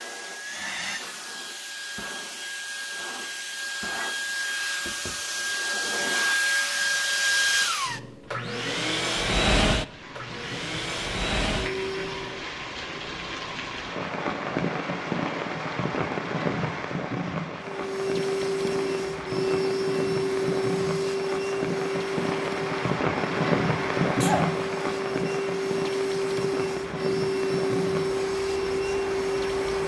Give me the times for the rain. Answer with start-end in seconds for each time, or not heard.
9.7-29.8.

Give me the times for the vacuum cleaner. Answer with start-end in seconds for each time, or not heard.
0.0-12.3, 17.6-29.8.